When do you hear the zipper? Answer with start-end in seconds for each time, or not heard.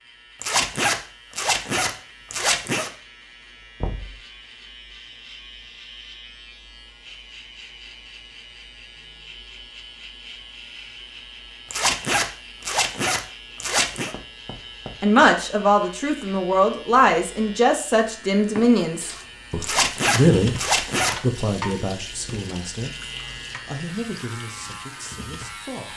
0.4-2.9, 11.7-14.1, 19.6-21.1.